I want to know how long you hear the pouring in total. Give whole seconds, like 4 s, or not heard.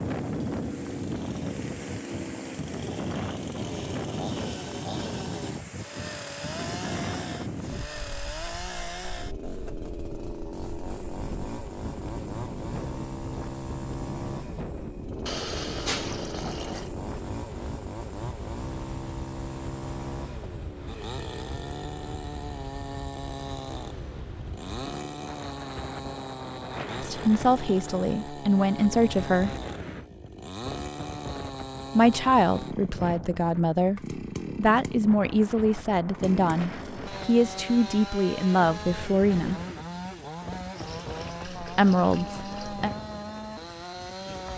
4 s.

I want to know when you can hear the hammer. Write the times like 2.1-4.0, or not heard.
not heard.